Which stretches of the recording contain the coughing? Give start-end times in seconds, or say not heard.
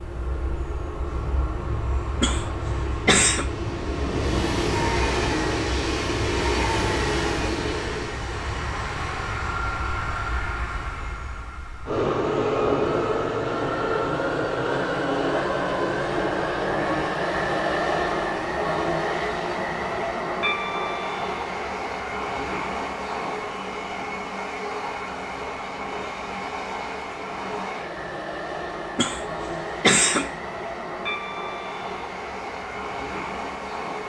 2.2-3.5, 28.9-30.3.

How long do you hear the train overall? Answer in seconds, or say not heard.
34 s.